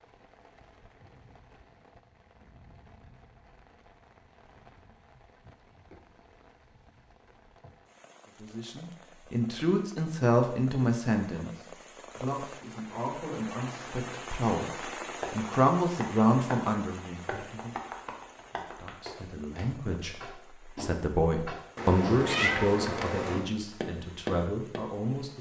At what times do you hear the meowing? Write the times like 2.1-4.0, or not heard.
21.8-23.4.